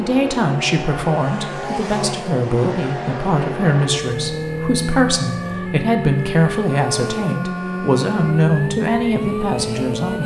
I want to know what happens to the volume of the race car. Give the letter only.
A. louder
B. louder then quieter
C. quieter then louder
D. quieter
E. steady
E.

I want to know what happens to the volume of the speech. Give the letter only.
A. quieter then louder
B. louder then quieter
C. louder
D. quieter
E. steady
E.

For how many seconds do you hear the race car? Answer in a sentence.
The race car can be heard for 10 seconds in total.